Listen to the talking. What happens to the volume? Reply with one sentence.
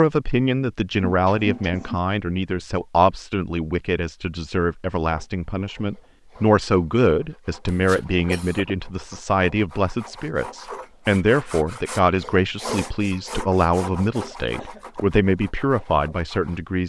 The loudness of the talking stays about the same.